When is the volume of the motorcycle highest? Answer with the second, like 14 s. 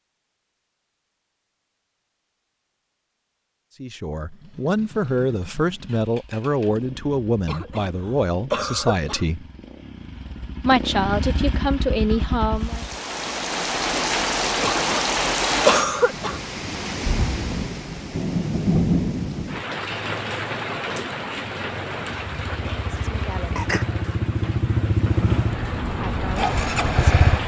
27 s.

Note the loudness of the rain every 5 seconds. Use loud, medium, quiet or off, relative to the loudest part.
off, off, loud, loud, medium, medium.